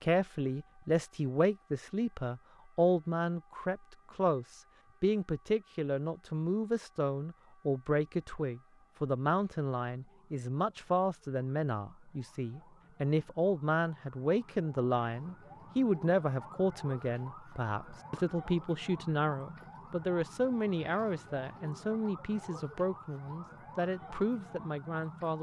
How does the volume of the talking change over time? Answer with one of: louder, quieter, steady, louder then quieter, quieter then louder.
steady.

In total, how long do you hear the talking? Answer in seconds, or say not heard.
25 s.